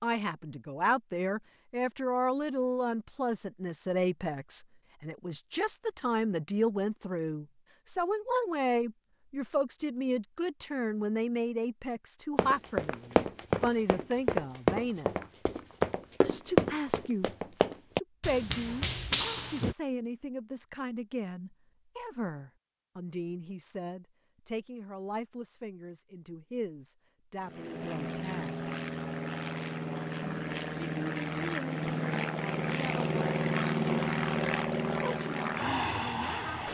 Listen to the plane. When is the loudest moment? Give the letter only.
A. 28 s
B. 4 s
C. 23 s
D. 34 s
D.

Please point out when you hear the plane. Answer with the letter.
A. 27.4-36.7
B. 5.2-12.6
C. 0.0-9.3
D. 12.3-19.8
A.